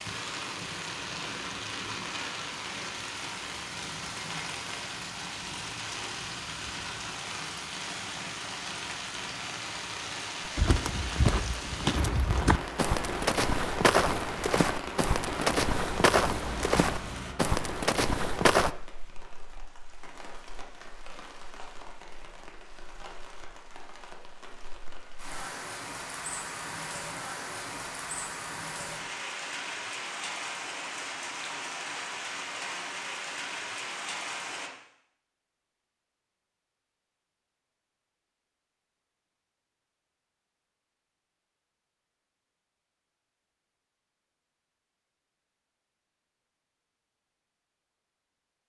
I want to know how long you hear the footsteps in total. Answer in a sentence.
You can hear the footsteps for 8 seconds altogether.